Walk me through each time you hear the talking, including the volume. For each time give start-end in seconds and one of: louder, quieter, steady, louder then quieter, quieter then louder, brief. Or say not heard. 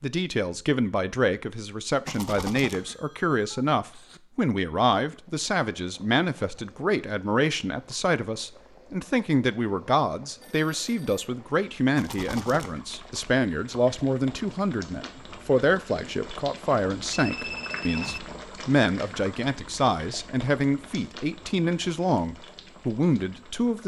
0.0-23.8 steady.